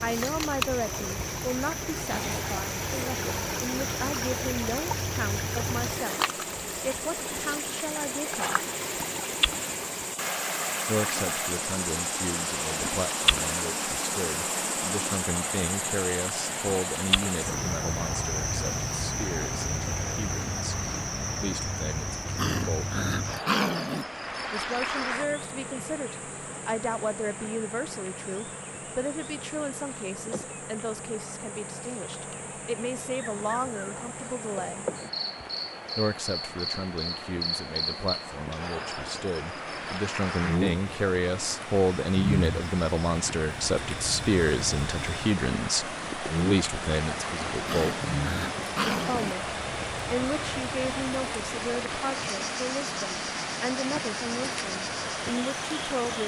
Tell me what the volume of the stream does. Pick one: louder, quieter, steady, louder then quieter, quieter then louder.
quieter then louder.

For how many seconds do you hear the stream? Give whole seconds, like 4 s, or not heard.
56 s.